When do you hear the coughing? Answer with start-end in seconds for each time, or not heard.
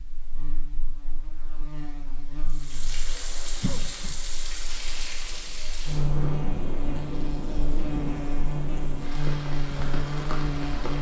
3.6-4.2.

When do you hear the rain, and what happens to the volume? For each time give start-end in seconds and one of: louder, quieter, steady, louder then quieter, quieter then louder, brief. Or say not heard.
2.5-10.9 steady.